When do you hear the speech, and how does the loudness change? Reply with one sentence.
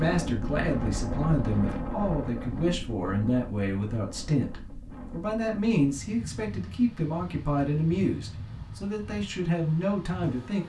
You can hear the speech from 0.0 to 10.6 s, at a steady volume.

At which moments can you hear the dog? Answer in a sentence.
The dog can't be heard in this clip.